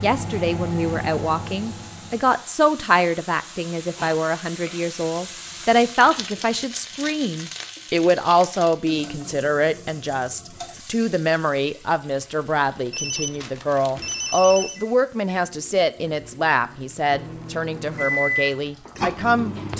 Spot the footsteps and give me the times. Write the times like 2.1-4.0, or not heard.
not heard.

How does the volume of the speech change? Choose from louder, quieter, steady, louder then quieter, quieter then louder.
steady.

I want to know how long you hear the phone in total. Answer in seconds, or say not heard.
2 s.